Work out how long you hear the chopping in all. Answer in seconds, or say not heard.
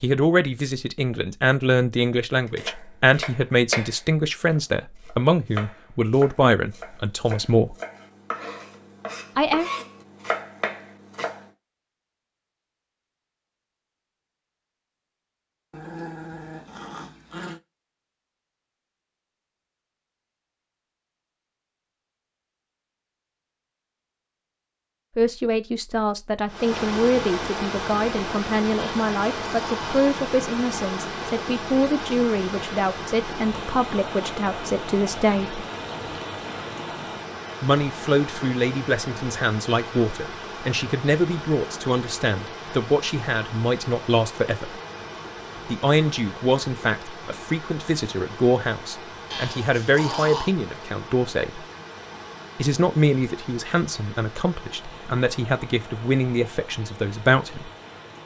9 s.